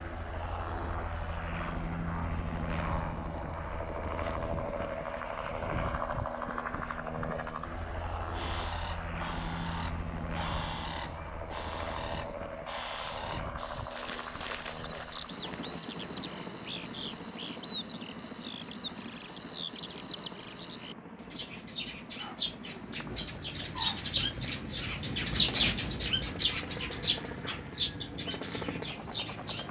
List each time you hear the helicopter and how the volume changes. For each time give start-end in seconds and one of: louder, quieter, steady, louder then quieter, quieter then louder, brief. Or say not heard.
0.0-29.6 quieter.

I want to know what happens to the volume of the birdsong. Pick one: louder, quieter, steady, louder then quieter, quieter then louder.
louder.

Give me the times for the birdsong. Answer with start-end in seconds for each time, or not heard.
8.3-29.6.